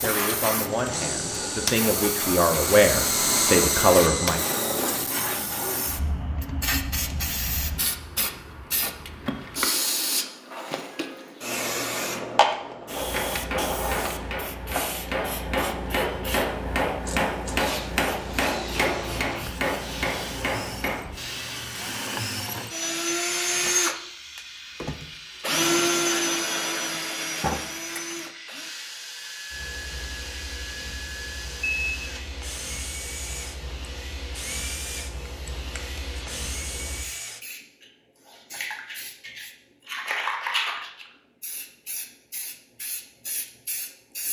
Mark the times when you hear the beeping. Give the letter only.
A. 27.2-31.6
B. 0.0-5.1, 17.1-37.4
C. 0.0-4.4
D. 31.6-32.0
D.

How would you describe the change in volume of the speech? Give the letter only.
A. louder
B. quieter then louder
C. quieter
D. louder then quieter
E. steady
A.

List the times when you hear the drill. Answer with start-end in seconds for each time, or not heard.
0.0-5.1, 17.1-37.4.